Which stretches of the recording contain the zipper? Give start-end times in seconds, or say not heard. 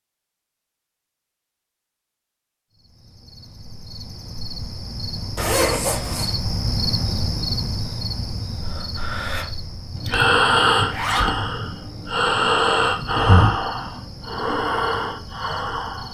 5.3-6.3, 10.8-11.3.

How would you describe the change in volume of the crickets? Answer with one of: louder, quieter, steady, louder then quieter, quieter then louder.
louder then quieter.